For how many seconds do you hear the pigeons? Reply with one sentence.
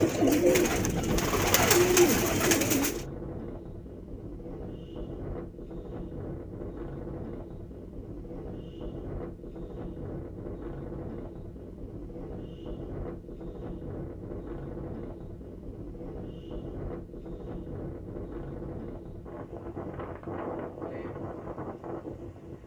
The pigeons can be heard for 3 seconds in total.